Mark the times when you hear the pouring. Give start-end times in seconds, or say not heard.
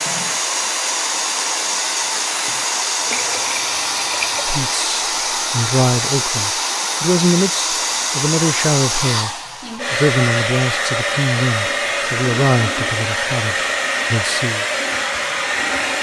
3.1-4.7.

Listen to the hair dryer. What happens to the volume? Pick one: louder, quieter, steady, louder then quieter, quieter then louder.
steady.